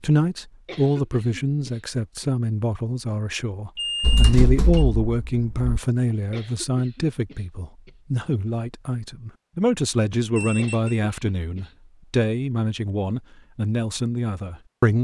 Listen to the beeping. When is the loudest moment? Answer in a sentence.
The loudest moment of the beeping is at 4 seconds.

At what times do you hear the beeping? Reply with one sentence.
The beeping can be heard from 3.8 to 4.8 s and from 10.3 to 11.0 s.